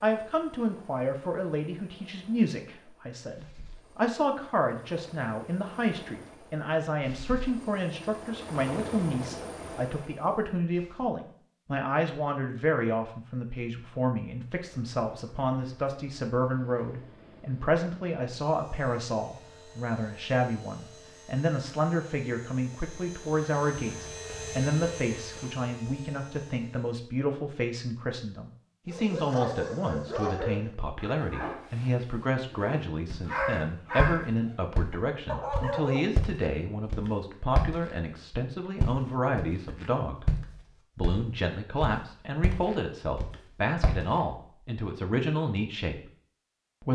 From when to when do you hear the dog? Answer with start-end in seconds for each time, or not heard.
28.9-36.1.